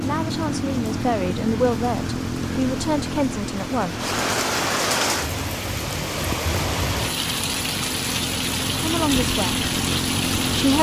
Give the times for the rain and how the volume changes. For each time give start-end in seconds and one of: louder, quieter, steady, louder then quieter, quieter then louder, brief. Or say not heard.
0.0-10.7 louder.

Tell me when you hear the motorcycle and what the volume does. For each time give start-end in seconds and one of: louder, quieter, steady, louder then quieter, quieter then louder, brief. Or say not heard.
0.0-10.7 quieter then louder.